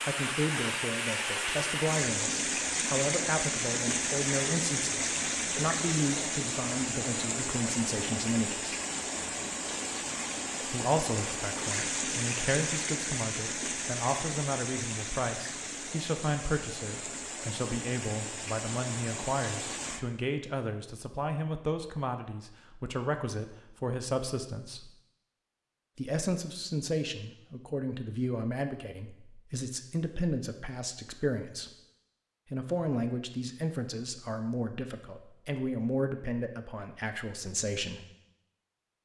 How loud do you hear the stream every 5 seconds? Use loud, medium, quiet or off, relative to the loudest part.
loud, loud, loud, medium, off, off, off, off.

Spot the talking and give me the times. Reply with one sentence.
The talking can be heard from 0.0 to 8.8 s, from 10.6 to 24.9 s, from 25.9 to 31.7 s and from 32.5 to 38.0 s.